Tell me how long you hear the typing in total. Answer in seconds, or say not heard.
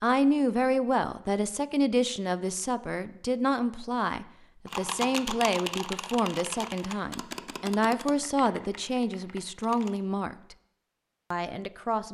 5 s.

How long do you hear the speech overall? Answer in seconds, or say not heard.
11 s.